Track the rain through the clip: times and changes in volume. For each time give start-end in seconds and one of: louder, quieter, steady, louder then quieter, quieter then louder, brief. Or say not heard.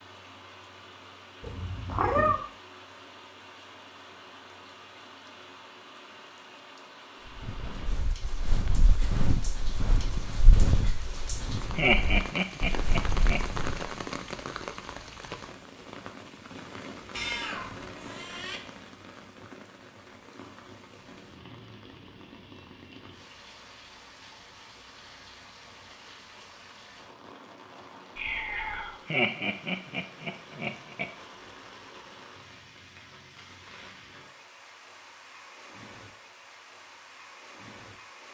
0.0-38.2 louder then quieter.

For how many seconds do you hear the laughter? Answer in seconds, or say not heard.
4 s.